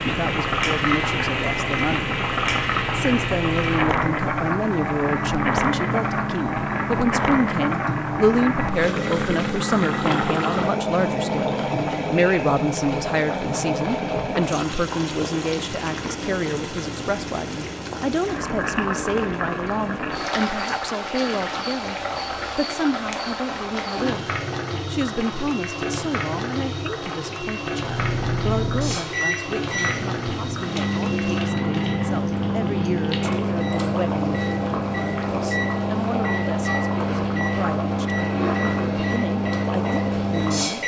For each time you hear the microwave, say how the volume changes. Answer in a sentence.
You can hear the microwave from 0.2 to 12.2 s, at a steady volume; and from 27.8 to 40.8 s, at a steady volume.